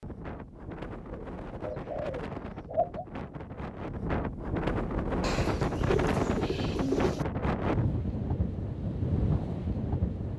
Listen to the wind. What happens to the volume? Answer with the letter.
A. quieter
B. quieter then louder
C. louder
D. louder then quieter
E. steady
C.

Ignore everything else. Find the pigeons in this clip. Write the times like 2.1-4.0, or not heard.
1.1-3.0, 5.2-7.2.